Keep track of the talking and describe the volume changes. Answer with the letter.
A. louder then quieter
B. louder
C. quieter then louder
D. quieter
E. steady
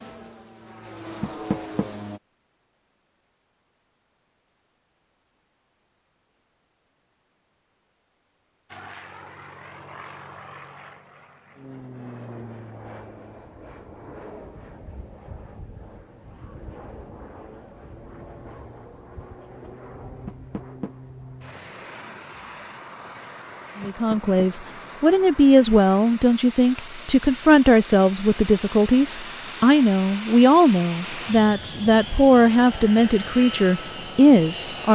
E.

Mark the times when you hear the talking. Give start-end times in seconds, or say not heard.
23.8-34.9.